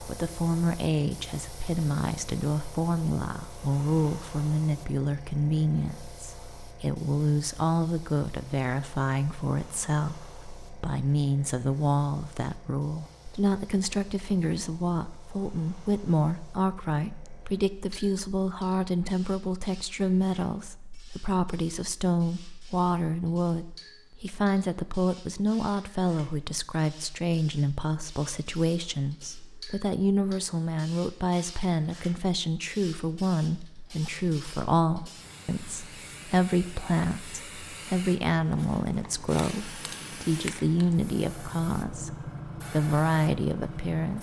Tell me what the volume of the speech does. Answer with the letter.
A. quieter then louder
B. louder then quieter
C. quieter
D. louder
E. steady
E.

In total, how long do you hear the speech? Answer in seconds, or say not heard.
44 s.